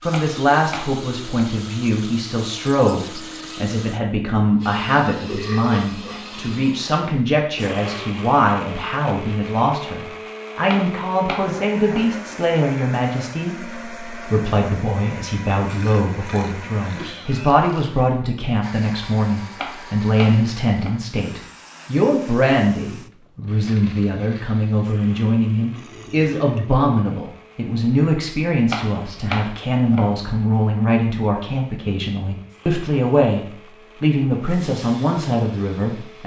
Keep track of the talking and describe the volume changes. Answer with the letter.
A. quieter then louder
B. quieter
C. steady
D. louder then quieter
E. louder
C.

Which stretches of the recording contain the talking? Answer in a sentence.
The talking can be heard from 0.0 to 36.2 s.